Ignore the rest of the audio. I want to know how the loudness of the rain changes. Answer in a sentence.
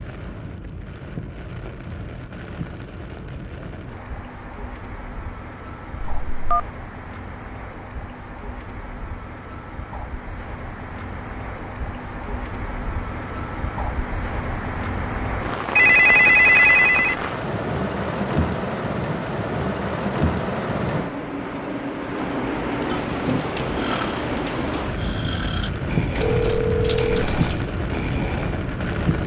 The loudness of the rain goes up.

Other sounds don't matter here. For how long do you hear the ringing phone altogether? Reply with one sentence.
The ringing phone can be heard for 4 seconds in total.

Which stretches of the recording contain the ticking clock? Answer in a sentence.
The ticking clock can't be heard in this clip.